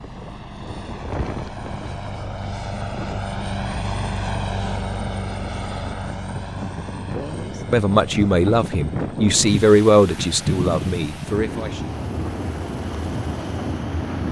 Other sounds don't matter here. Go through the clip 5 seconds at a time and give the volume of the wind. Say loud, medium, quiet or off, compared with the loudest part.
medium, loud, loud.